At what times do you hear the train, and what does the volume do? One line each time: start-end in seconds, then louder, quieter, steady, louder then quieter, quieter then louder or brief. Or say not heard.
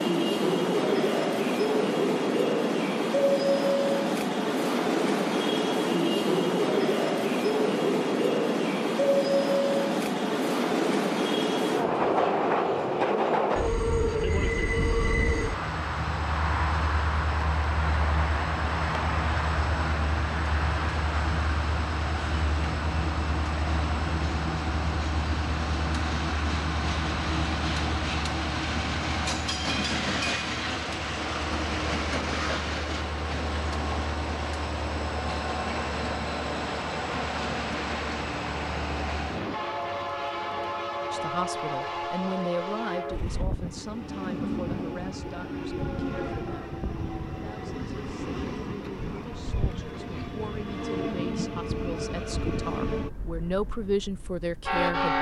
0.0-55.1 quieter.